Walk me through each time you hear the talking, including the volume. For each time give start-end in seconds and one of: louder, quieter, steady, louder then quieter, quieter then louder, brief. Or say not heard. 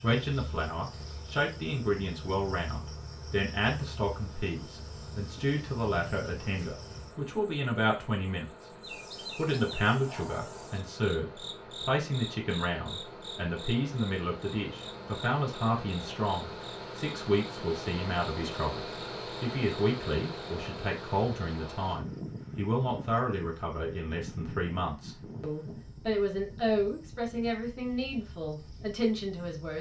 0.0-8.5 steady
9.3-29.7 steady.